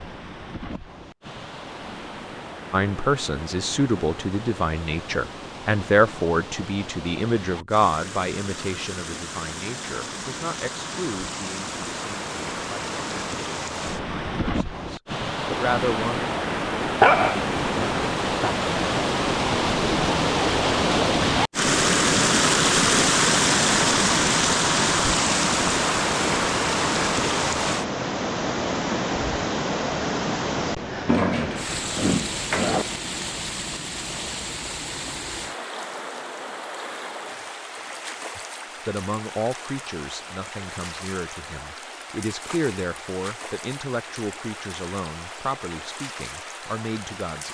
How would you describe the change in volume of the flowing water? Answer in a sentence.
The volume of the flowing water goes up, then down.